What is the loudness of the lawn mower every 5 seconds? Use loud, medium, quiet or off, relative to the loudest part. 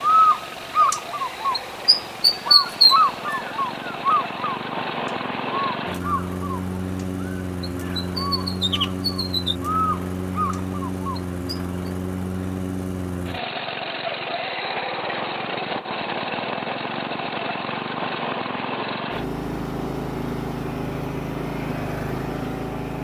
medium, loud, loud, loud, loud.